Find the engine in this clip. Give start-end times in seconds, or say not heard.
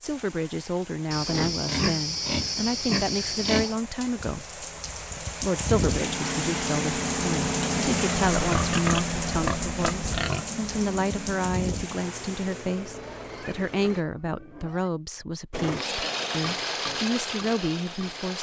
5.8-14.1, 15.5-18.3.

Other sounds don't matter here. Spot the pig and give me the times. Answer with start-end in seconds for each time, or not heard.
1.1-3.8, 8.3-10.4, 12.8-14.9.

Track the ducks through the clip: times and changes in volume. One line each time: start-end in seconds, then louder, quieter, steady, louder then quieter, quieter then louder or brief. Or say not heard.
not heard.